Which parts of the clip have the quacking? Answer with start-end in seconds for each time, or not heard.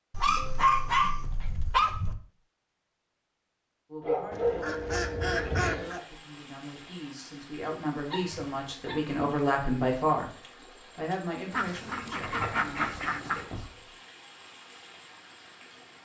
4.3-6.0, 11.5-13.4.